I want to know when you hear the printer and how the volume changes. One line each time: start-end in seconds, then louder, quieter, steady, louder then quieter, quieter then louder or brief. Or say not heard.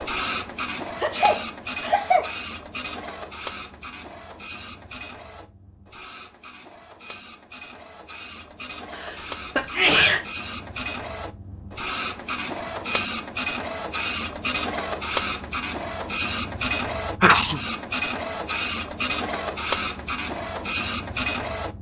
0.0-21.7 quieter then louder.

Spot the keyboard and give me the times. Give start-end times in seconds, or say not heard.
not heard.